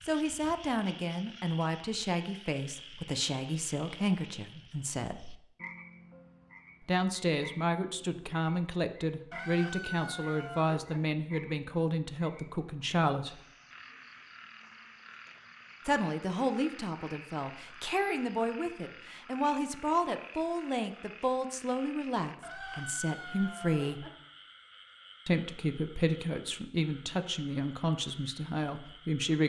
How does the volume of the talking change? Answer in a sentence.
The loudness of the talking stays about the same.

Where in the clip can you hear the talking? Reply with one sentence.
The talking can be heard from 0.0 to 5.3 s, from 6.8 to 13.4 s, from 15.8 to 24.1 s and from 25.2 to 29.4 s.